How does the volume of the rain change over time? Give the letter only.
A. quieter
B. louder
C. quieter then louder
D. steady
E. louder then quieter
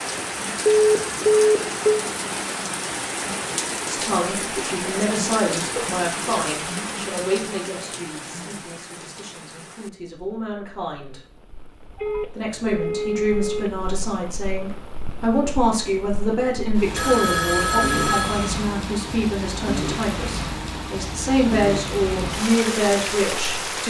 C.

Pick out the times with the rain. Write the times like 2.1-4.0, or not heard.
0.0-23.8.